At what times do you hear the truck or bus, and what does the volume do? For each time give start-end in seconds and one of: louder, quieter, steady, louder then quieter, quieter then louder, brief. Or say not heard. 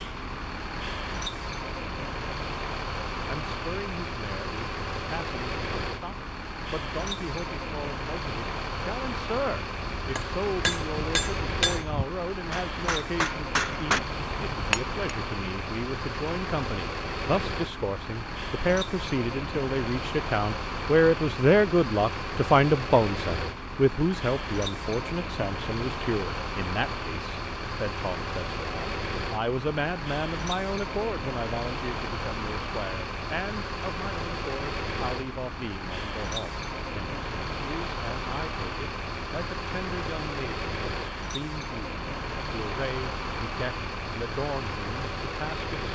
0.0-45.9 steady.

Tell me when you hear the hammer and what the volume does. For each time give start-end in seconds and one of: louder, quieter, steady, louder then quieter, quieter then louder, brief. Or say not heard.
9.9-14.9 quieter then louder.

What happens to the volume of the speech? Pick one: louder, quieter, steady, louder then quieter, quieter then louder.
louder then quieter.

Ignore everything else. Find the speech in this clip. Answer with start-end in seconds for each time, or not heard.
3.2-45.8.